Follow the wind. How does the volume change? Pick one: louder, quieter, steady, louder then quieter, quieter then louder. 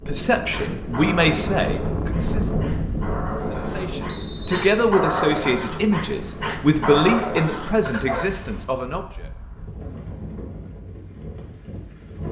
quieter.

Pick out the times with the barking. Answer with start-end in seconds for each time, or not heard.
0.5-8.7.